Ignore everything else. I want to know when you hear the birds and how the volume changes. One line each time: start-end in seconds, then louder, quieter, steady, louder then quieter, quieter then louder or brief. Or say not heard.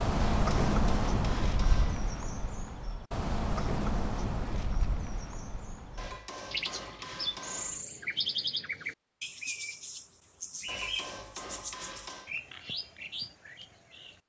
0.0-14.2 quieter.